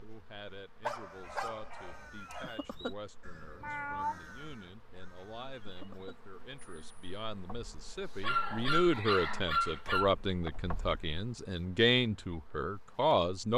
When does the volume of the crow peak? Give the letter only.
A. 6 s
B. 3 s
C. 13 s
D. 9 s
B.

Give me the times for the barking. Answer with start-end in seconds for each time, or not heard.
0.8-2.5, 8.2-10.1.